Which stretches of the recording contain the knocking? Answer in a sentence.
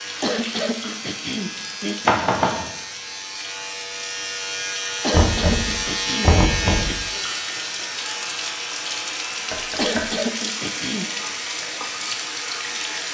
You can hear the knocking from 2.0 to 2.6 s, from 5.1 to 7.0 s and from 9.5 to 10.1 s.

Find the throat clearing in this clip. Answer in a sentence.
The throat clearing can be heard from 0.2 to 2.1 s, from 5.0 to 7.0 s and from 9.8 to 11.1 s.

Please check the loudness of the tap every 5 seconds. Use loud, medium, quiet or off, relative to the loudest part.
medium, loud, loud.